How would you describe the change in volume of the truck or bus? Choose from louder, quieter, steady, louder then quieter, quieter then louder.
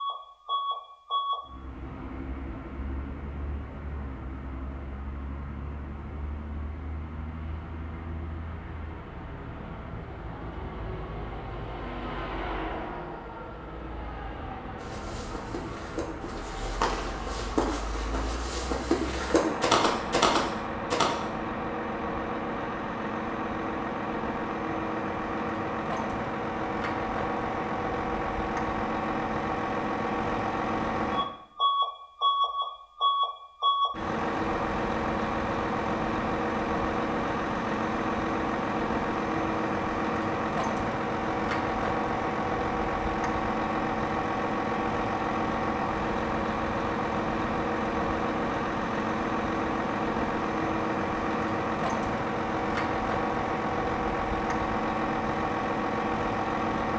louder.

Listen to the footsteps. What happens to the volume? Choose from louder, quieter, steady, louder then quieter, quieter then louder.
louder.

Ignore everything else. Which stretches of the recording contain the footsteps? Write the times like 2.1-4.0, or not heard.
14.8-21.1.